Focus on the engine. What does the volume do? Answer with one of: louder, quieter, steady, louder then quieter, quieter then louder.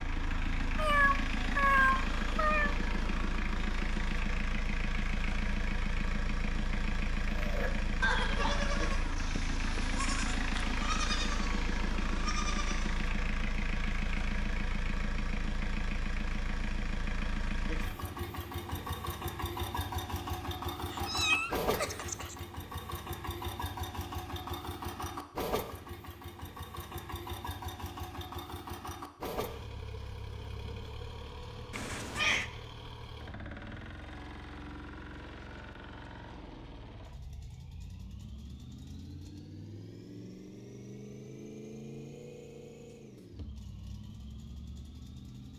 quieter.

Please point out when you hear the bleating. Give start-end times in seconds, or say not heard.
7.2-13.1.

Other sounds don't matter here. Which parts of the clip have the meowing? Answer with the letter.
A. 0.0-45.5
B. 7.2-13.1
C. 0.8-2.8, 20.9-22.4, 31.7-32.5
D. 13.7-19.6
C.